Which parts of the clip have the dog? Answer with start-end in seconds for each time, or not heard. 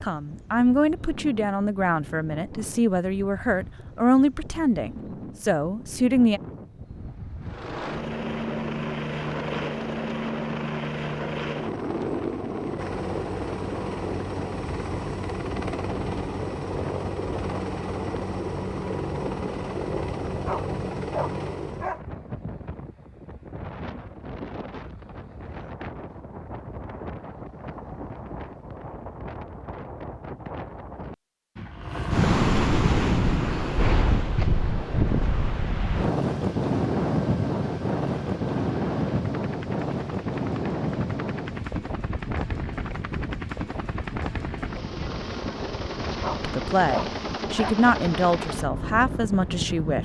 20.4-22.1, 46.2-47.8.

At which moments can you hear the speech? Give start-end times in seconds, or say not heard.
0.0-6.4, 46.4-50.0.